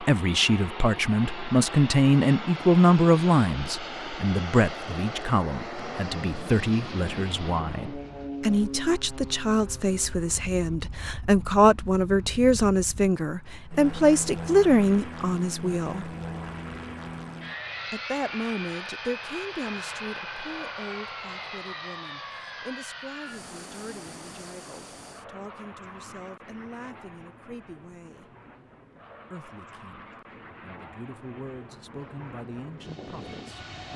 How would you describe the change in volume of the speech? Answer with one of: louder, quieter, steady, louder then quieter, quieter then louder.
quieter.